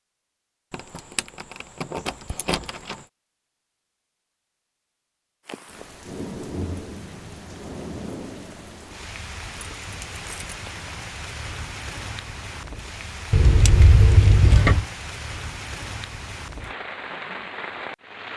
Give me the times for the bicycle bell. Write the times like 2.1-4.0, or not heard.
not heard.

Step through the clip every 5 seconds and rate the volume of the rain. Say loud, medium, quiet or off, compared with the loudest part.
off, loud, loud, loud.